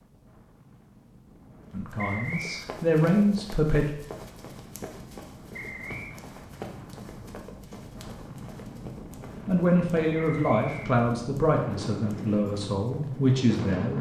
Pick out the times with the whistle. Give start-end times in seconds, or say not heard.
1.9-2.6, 5.5-6.2, 10.2-10.9.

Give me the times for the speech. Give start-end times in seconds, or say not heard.
1.7-3.9, 9.4-13.9.